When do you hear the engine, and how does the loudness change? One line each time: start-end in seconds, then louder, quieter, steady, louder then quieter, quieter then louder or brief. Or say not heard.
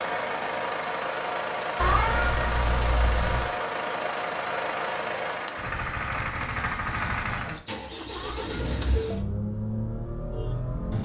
0.0-11.0 steady.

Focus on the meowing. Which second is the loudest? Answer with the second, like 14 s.
2 s.